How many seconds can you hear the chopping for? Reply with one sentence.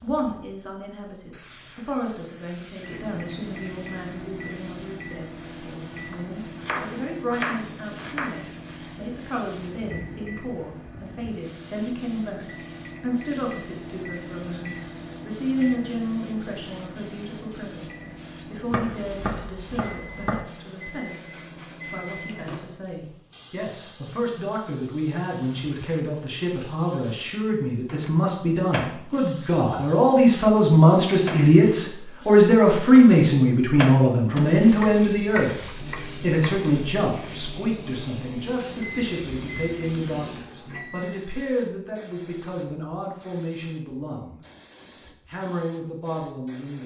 You can hear the chopping for 6 seconds altogether.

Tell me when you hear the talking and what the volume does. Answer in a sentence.
The talking can be heard from 0.0 to 44.4 s, getting louder then quieter; and briefly from 45.2 to 46.8 s.